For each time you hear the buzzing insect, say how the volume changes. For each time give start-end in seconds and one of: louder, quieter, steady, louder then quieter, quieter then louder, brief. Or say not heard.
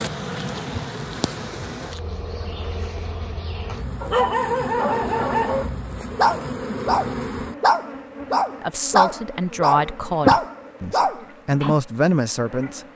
0.0-12.9 quieter then louder.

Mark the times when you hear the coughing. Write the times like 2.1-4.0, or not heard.
not heard.